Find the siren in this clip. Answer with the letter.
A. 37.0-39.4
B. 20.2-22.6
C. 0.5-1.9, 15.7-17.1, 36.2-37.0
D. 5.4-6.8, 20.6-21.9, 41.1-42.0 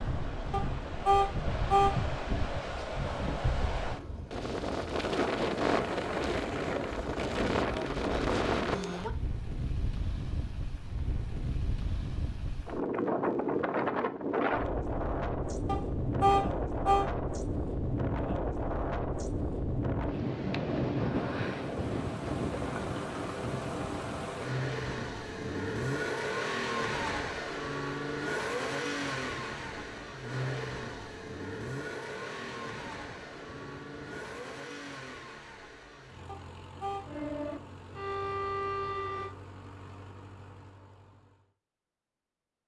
A.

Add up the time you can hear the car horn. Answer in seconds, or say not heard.
4 s.